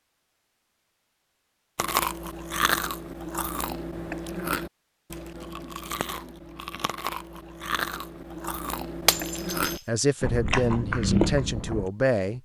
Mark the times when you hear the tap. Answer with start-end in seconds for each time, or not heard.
not heard.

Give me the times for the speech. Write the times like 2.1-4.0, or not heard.
9.8-12.4.